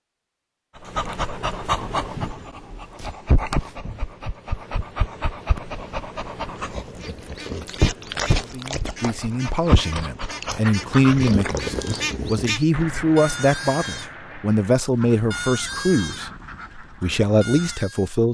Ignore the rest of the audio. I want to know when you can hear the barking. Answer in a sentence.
You can hear the barking from 0.8 to 12.5 s.